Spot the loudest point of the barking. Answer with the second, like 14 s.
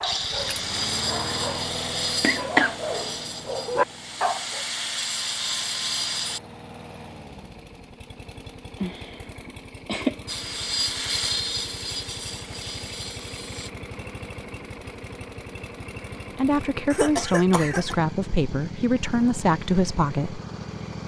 4 s.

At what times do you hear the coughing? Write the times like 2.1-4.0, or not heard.
2.2-2.8, 8.8-10.2, 16.9-17.9.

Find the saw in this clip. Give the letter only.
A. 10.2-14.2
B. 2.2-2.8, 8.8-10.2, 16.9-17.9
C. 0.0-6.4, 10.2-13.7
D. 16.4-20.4
C.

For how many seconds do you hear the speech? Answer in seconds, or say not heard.
4 s.